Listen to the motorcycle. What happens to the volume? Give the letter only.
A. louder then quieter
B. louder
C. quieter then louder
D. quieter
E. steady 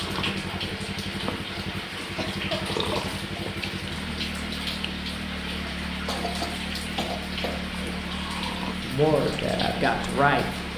E.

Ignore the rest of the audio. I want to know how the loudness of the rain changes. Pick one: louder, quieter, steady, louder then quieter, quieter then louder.
steady.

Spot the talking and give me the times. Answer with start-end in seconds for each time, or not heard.
8.8-10.4.